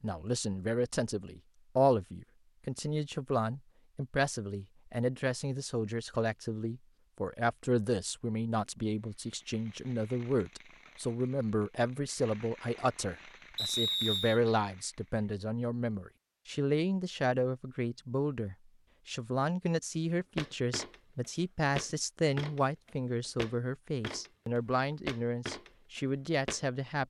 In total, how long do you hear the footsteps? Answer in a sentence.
The footsteps can be heard for 6 seconds in total.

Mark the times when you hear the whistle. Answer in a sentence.
The whistle can be heard from 13.6 to 14.4 s.